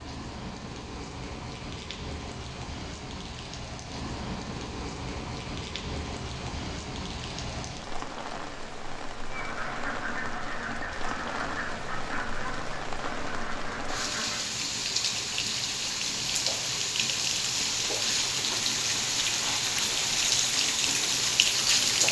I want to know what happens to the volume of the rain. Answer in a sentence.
The loudness of the rain goes up.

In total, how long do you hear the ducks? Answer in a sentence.
The ducks can be heard for 5 seconds in total.